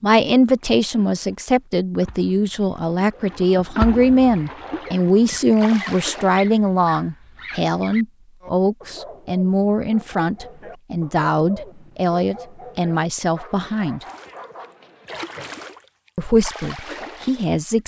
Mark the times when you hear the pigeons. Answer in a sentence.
You can't hear the pigeons here.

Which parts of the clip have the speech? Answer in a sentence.
You can hear the speech from 0.0 to 14.1 s and from 16.1 to 17.8 s.